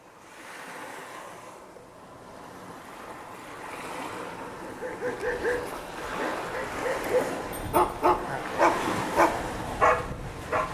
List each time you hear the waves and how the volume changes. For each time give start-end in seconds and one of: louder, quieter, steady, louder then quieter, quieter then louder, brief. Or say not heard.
0.0-10.6 louder.